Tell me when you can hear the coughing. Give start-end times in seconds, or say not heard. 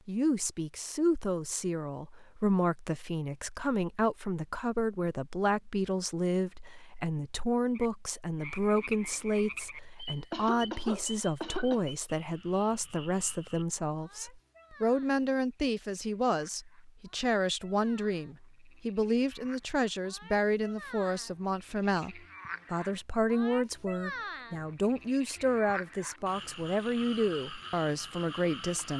10.3-11.9.